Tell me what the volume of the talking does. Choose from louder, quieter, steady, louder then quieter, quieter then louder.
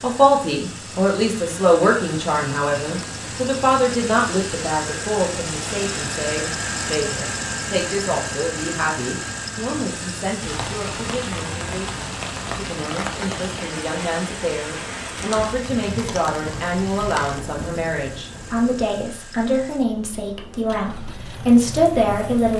quieter then louder.